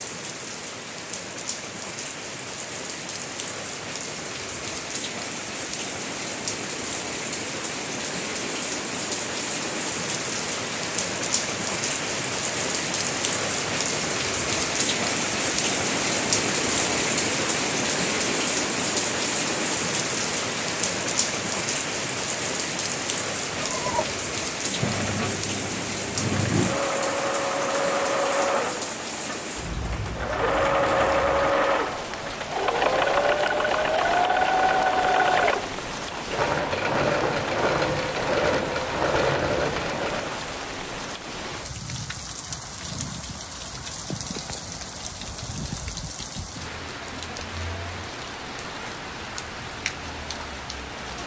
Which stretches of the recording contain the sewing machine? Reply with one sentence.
You can hear the sewing machine from 23.6 to 40.4 s.